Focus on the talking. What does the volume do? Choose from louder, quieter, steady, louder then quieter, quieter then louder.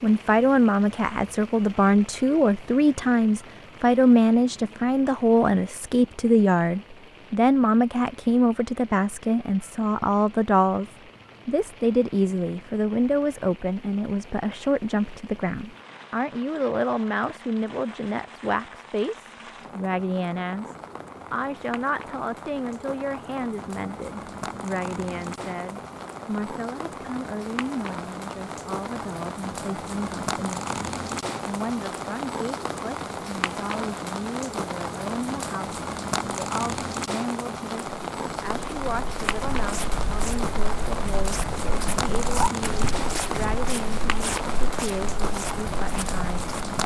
quieter.